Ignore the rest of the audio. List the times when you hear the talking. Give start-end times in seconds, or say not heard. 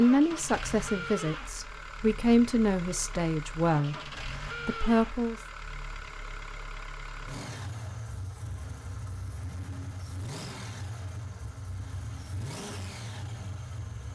0.0-5.3.